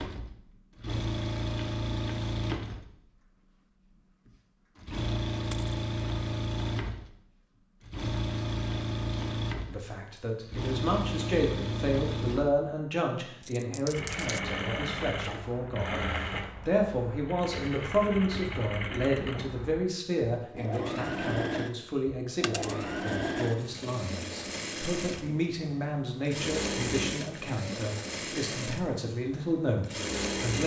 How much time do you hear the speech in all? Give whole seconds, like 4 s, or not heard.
21 s.